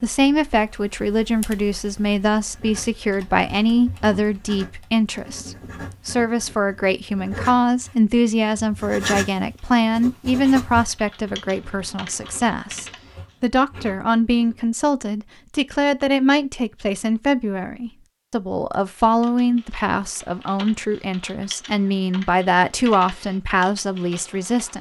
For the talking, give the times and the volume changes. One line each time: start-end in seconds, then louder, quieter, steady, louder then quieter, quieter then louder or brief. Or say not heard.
0.0-24.7 steady.